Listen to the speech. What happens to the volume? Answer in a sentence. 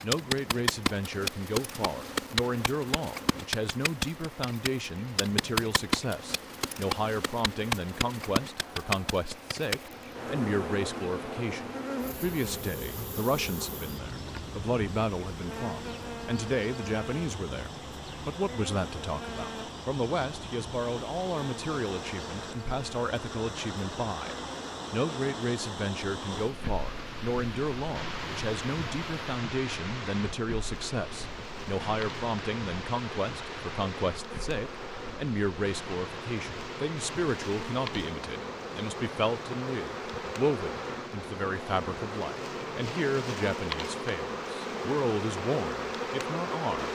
The volume of the speech stays about the same.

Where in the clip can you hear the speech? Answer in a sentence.
You can hear the speech from 0.0 to 46.8 s.